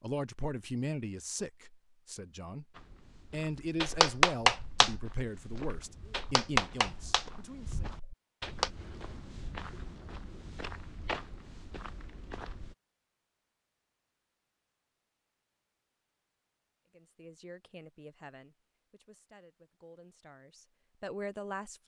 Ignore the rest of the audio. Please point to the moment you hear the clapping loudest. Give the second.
4 s.